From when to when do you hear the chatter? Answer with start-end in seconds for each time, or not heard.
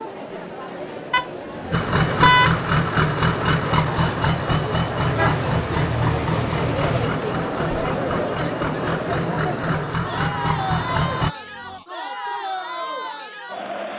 0.0-13.9.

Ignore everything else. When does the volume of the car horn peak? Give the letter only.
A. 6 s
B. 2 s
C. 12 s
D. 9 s
B.